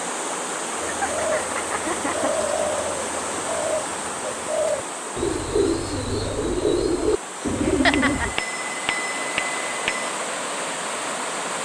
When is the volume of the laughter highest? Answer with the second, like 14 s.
8 s.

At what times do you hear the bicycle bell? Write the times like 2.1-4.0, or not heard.
7.9-10.1.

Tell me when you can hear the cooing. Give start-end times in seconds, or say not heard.
0.8-8.3.